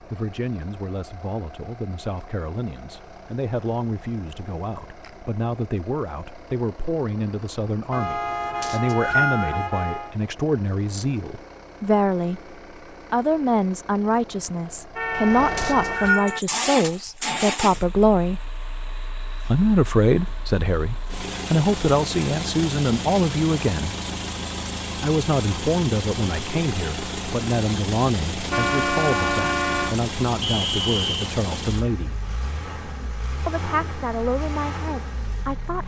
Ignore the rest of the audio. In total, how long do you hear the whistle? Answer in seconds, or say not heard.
2 s.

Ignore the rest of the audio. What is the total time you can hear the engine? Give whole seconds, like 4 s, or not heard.
36 s.